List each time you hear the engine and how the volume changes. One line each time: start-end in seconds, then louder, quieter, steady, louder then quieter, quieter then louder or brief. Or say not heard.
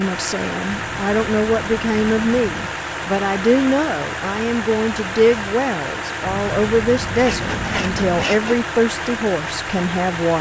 0.0-10.3 steady.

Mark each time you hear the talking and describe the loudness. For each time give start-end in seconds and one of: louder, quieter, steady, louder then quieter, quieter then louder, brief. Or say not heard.
0.0-10.3 steady.